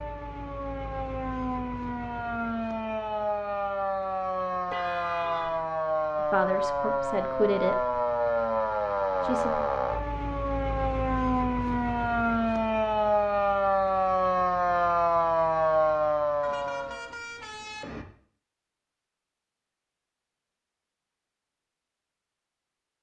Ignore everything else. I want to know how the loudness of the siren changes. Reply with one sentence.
The loudness of the siren goes up.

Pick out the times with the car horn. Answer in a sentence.
The car horn can be heard from 4.7 to 5.7 s and from 16.4 to 18.1 s.